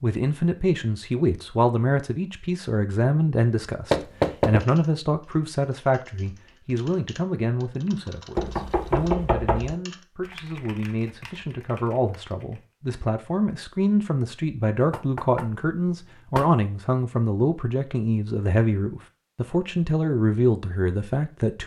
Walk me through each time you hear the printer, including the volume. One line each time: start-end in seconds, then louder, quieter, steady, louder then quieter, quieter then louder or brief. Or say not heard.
not heard.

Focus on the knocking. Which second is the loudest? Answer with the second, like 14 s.
4 s.